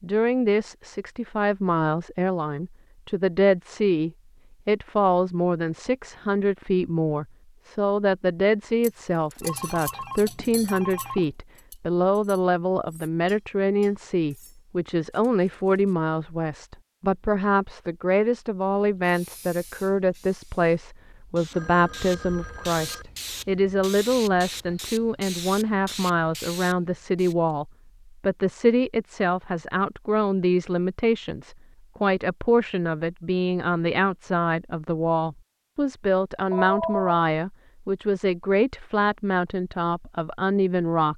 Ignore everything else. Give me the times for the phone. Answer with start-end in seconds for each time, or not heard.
9.4-11.2, 21.5-23.1, 36.5-37.2.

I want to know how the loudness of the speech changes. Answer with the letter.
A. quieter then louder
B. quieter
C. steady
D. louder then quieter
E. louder
C.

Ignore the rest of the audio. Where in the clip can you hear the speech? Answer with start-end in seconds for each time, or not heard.
0.0-41.1.